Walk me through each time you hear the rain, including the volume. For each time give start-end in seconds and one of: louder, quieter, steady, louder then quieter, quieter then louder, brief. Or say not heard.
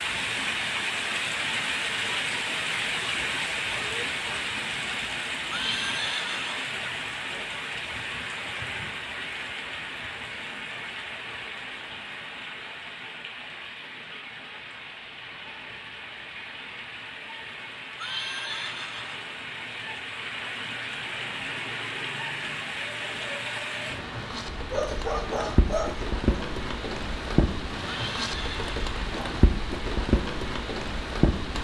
0.0-31.6 quieter then louder.